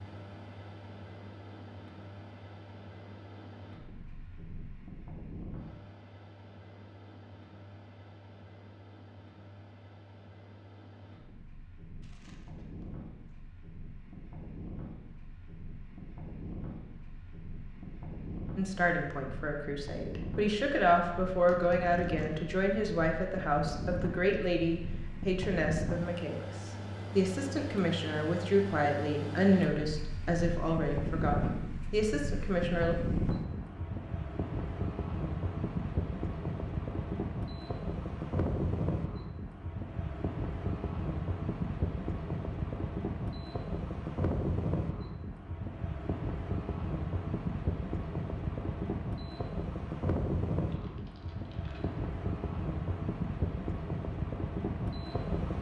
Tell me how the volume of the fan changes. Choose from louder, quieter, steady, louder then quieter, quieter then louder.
louder.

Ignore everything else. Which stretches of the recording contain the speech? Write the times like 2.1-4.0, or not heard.
18.6-33.0.